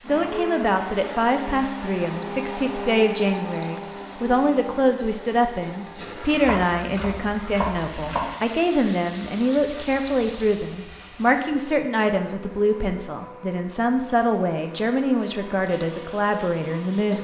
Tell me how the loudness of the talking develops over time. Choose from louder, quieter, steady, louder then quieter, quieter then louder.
steady.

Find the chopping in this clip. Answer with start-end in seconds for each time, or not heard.
6.4-8.2.